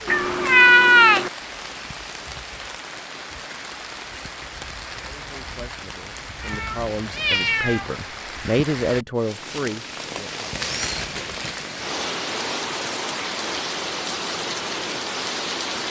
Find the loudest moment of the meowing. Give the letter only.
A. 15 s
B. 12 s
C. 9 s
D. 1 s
D.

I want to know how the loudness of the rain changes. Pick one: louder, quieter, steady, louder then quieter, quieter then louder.
louder.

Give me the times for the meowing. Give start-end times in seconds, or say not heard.
0.1-1.3, 6.4-8.0, 10.6-11.3.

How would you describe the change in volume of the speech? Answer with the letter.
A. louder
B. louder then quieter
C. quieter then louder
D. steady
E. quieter
B.